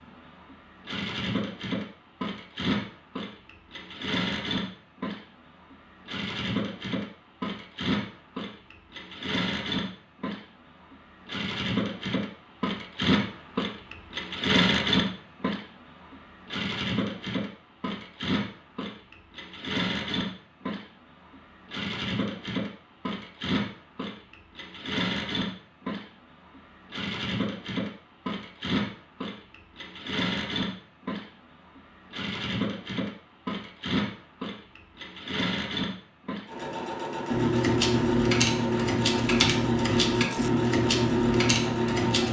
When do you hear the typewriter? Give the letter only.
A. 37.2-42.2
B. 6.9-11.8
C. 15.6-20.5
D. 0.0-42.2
A.